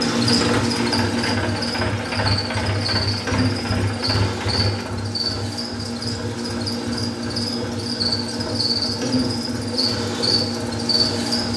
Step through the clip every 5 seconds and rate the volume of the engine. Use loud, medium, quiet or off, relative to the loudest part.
loud, medium, medium.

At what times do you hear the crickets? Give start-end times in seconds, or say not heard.
0.0-11.5.